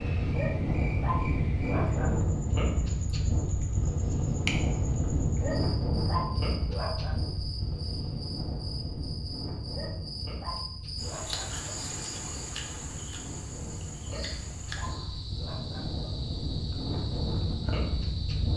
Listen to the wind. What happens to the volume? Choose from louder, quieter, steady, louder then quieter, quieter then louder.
quieter then louder.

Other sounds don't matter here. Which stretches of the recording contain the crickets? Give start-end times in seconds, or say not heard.
0.0-18.5.